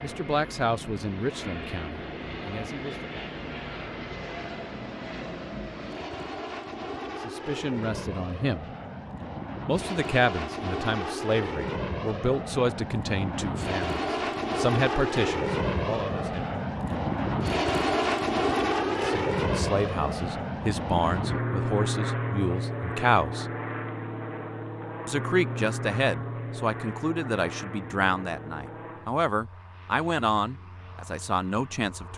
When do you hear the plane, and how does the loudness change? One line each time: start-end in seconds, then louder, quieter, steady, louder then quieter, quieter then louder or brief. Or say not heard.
0.0-32.1 louder then quieter.